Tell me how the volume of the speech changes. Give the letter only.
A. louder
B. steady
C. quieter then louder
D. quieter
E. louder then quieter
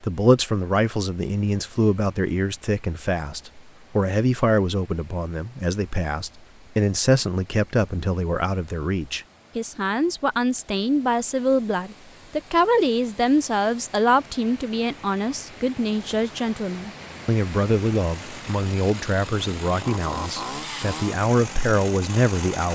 B.